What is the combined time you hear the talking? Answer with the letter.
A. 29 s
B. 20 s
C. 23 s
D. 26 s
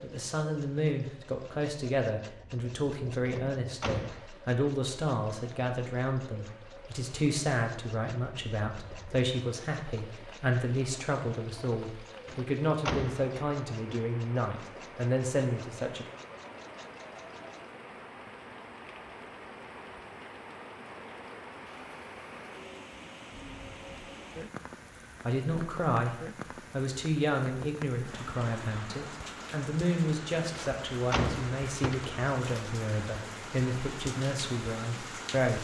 D.